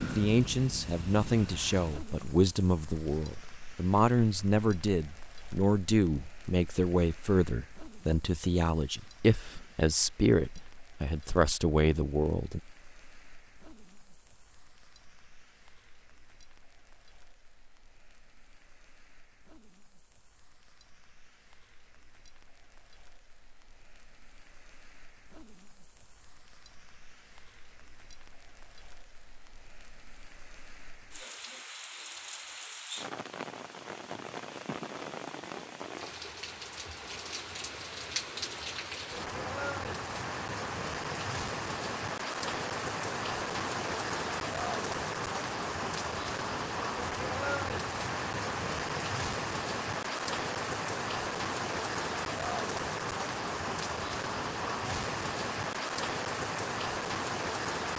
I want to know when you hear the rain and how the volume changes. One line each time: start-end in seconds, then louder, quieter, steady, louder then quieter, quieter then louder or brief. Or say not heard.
0.0-57.9 quieter then louder.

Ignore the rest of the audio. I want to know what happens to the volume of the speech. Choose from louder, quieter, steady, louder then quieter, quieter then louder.
steady.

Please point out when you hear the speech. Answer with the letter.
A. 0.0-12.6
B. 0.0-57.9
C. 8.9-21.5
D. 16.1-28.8
A.